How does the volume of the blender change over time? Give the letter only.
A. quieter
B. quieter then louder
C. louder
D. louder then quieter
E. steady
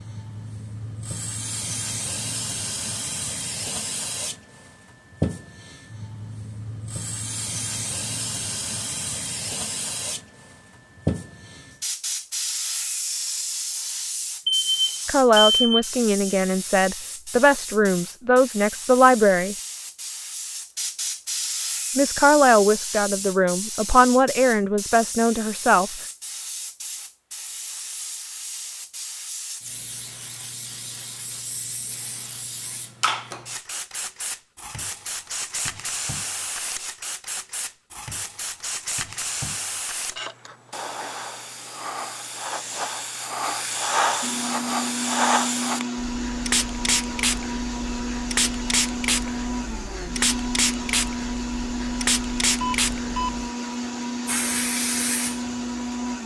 E.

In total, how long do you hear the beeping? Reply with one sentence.
You can hear the beeping for 2 seconds altogether.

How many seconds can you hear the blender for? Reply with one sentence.
The blender can be heard for 12 seconds in total.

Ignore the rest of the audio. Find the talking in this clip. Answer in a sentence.
You can hear the talking from 15.1 to 19.6 s and from 21.9 to 25.9 s.